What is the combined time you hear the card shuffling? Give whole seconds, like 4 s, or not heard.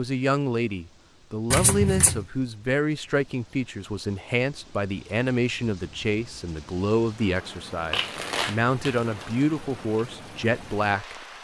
2 s.